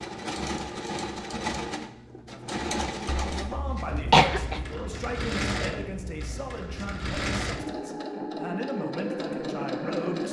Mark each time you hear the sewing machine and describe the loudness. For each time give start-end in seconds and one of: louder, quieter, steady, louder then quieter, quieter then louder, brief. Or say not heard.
0.0-10.2 steady.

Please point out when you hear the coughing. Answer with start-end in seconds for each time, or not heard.
3.1-4.7.